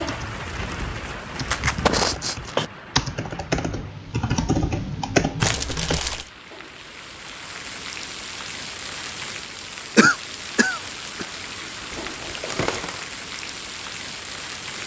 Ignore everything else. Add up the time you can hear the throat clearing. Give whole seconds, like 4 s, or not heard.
2 s.